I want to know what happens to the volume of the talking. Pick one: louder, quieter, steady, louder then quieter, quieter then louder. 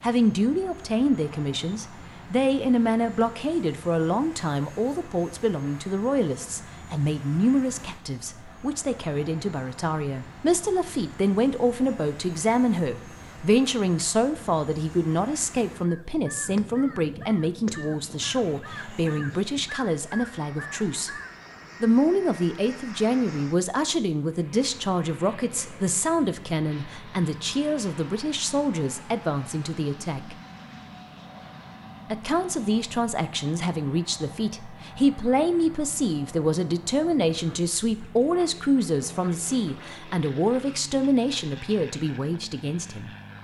steady.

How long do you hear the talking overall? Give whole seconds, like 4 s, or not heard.
41 s.